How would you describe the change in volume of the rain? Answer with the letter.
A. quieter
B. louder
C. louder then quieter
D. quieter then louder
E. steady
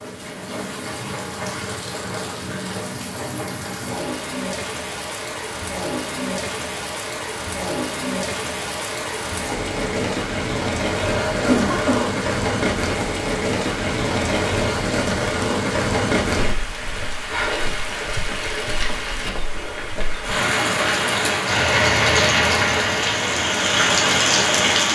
B.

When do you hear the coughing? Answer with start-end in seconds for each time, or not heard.
11.0-12.1.